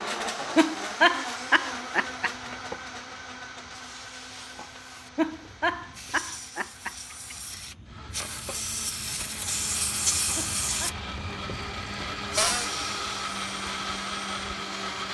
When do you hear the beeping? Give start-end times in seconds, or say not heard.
not heard.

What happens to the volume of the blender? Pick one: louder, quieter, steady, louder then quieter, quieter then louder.
quieter then louder.